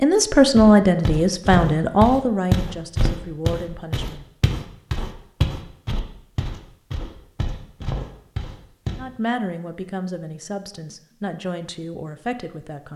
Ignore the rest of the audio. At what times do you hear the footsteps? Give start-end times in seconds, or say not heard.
0.6-9.0.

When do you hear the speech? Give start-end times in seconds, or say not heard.
0.0-4.2, 8.9-12.9.